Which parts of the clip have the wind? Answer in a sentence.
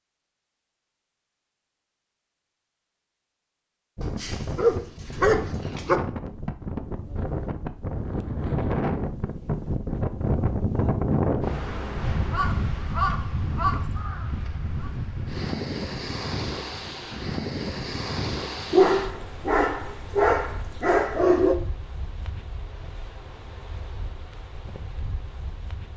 You can hear the wind from 4.0 to 25.9 s.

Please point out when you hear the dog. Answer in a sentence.
You can hear the dog from 4.0 to 6.0 s and from 18.7 to 21.6 s.